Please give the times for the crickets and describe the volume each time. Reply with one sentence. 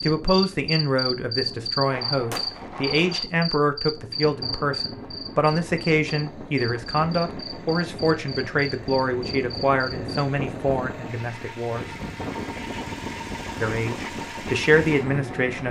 You can hear the crickets from 0.0 to 10.2 s, getting quieter.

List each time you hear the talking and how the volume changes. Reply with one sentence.
The talking can be heard from 0.0 to 11.8 s, at a steady volume; and briefly from 13.6 to 15.6 s.